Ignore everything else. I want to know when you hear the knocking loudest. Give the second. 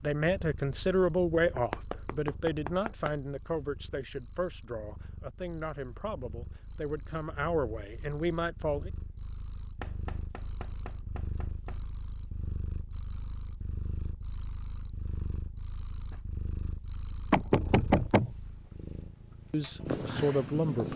18 s.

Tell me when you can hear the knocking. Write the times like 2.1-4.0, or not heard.
1.6-3.1, 9.8-11.8, 17.3-18.3.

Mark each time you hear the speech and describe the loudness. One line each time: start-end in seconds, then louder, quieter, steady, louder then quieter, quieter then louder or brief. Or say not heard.
0.0-8.9 quieter then louder
19.5-20.9 brief.